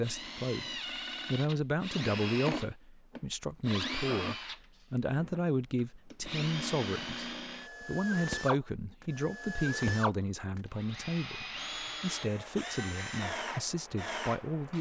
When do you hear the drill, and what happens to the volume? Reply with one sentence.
You can hear the drill from 0.0 to 14.7 s, at a steady volume.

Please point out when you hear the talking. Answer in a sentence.
The talking can be heard from 0.0 to 14.7 s.